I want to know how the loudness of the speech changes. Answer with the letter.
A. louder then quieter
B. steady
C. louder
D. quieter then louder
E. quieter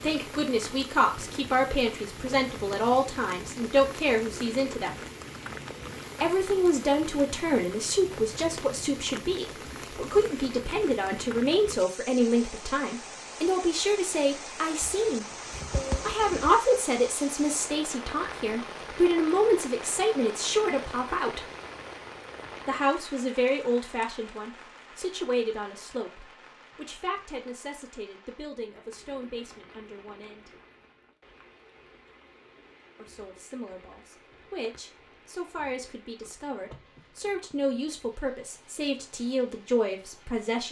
E.